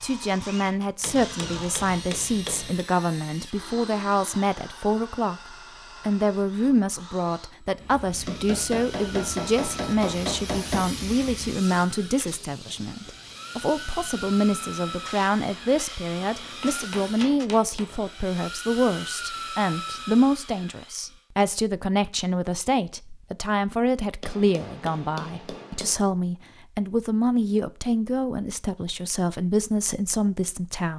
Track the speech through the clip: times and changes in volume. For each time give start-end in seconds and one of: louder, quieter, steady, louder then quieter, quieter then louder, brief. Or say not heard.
0.0-30.9 steady.